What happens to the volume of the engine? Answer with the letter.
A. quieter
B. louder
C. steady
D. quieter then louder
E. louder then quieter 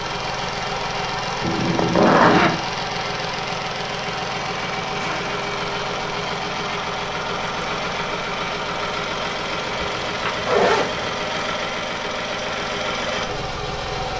C.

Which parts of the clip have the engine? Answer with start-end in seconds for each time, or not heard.
0.0-14.1.